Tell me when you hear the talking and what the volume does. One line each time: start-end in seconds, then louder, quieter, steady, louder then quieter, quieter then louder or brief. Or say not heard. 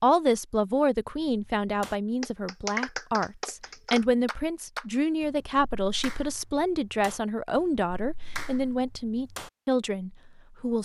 0.0-10.8 steady.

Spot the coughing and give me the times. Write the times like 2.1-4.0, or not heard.
not heard.